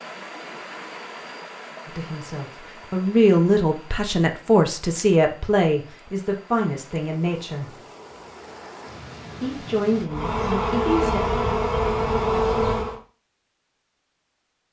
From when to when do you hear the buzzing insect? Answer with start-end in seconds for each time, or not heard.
10.1-13.0.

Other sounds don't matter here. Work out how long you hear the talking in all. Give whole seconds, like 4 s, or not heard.
8 s.